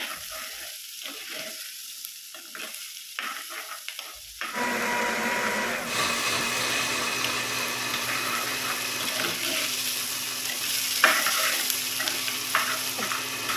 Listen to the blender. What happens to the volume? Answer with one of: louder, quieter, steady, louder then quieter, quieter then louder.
quieter.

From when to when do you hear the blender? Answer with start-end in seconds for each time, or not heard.
4.5-13.5.